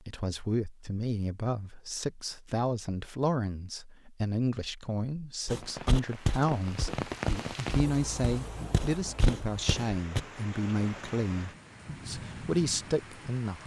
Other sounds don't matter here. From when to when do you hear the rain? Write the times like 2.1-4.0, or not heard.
5.5-13.6.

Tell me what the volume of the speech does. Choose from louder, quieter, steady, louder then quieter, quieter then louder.
steady.